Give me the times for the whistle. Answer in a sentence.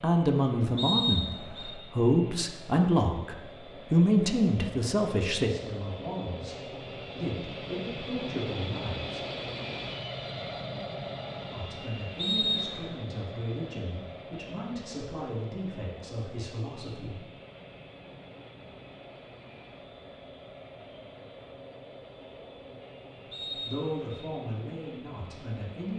The whistle can be heard from 0.8 to 1.7 s, from 12.2 to 12.9 s and from 23.3 to 24.2 s.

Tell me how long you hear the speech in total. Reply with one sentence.
The speech can be heard for 17 seconds in total.